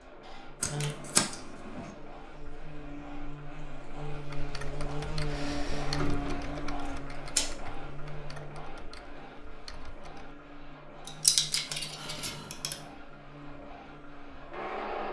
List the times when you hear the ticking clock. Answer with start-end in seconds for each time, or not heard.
not heard.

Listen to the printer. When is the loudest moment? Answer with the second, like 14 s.
15 s.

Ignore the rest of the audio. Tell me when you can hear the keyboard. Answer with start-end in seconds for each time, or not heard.
4.1-10.3.